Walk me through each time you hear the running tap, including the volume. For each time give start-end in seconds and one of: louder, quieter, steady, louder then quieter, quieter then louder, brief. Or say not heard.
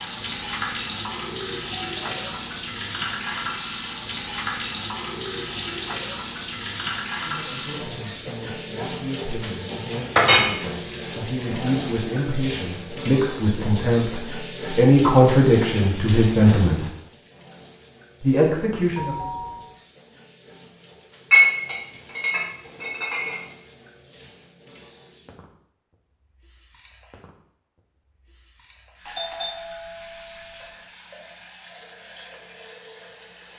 0.0-33.5 quieter.